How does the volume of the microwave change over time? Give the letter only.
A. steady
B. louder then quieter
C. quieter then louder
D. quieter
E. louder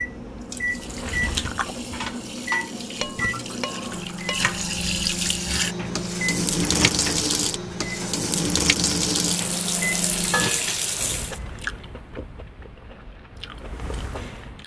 A.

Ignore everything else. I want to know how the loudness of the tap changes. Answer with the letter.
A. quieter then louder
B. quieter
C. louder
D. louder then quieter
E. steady
C.